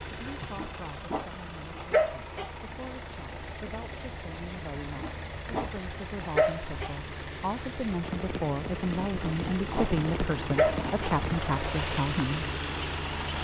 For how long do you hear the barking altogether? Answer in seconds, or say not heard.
6 s.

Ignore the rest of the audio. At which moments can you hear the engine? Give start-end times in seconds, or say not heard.
0.0-13.3.